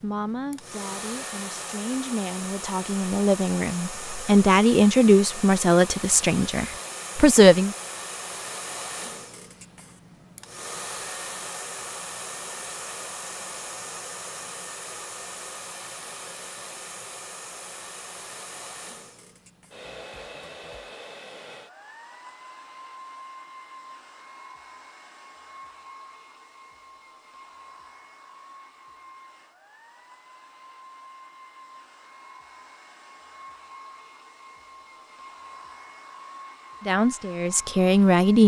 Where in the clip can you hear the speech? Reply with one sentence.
You can hear the speech from 0.0 to 7.8 s and from 36.9 to 38.4 s.